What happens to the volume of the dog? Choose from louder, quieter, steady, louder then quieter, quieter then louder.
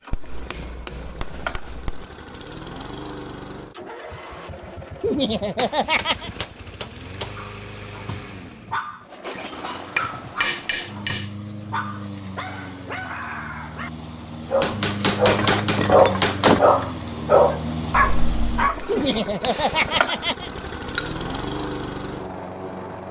louder.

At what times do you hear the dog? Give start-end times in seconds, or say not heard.
7.3-18.9.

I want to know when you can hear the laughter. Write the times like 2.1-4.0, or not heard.
5.0-6.3, 18.9-20.5.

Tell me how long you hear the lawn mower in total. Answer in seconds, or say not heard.
23 s.